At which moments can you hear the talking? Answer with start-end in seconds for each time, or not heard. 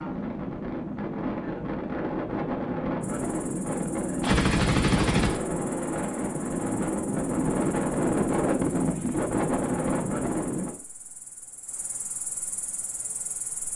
not heard.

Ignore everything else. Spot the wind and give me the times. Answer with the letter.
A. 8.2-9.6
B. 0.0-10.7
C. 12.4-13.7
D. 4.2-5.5
B.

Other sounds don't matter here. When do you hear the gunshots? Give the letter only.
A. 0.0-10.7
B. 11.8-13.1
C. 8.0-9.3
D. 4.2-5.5
D.